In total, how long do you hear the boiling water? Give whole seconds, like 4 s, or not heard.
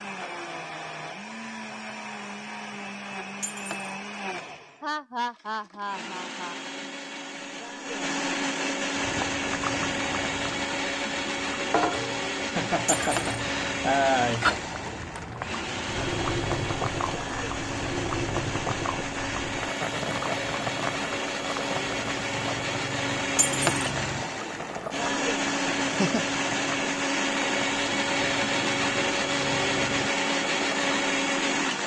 23 s.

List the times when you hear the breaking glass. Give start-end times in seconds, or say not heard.
3.4-4.0, 12.8-13.4, 23.4-23.9.